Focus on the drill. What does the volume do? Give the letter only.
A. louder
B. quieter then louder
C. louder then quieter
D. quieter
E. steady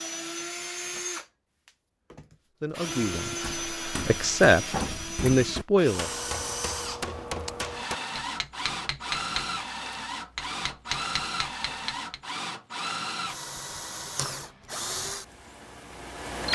E.